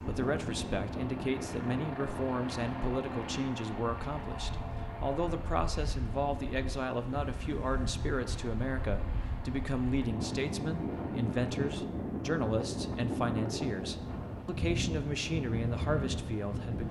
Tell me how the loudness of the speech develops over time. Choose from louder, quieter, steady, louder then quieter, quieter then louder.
steady.